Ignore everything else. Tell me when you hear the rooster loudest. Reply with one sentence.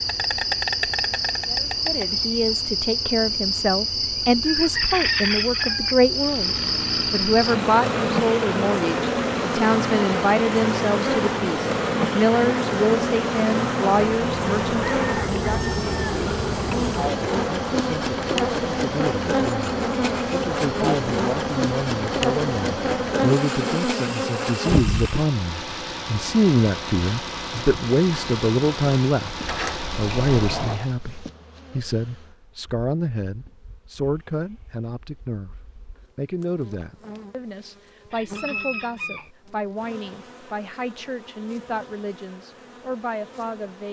The volume of the rooster peaks at 5 seconds.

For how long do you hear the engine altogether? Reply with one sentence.
The engine can be heard for 25 seconds in total.